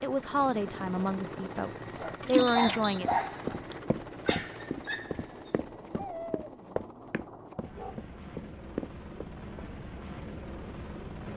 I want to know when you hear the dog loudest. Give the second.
3 s.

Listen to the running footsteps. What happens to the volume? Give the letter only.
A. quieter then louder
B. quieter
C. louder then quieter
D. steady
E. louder
A.